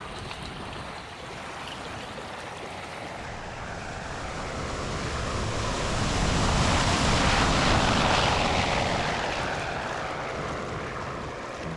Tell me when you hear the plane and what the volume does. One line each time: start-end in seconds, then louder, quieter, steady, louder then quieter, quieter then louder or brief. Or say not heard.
0.0-11.7 louder then quieter.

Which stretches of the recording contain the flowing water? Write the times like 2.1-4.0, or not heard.
0.0-11.7.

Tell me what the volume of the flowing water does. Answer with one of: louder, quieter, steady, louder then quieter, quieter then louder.
louder then quieter.